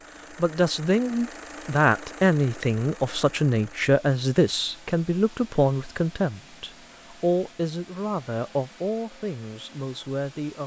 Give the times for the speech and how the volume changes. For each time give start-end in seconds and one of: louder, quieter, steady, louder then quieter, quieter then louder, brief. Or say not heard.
0.3-10.6 quieter.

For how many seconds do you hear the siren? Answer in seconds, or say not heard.
not heard.